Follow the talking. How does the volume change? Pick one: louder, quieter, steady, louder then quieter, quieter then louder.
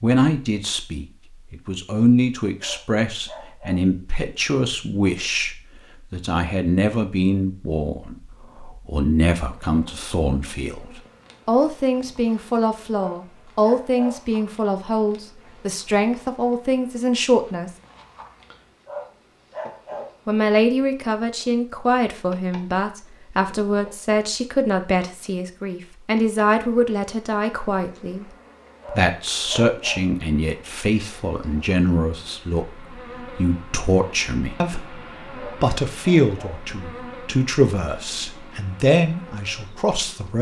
steady.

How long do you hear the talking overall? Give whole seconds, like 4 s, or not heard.
37 s.